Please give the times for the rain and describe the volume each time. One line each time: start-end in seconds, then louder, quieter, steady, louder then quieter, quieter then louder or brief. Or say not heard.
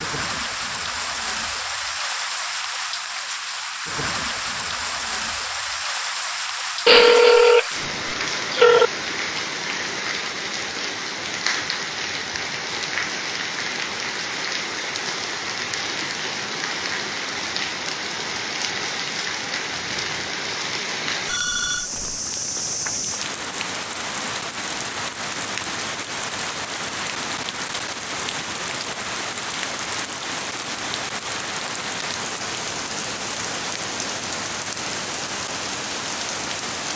0.0-36.9 steady.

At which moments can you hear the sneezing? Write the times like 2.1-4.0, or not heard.
not heard.